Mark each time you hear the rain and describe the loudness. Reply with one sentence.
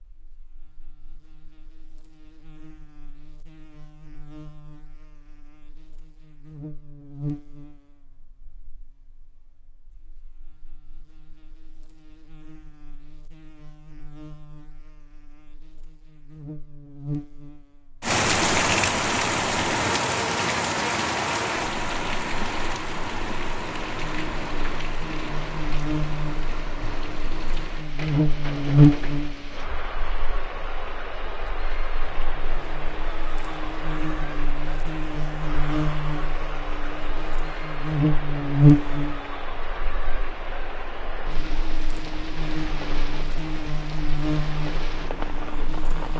You can hear the rain from 18.0 to 46.1 s, getting quieter.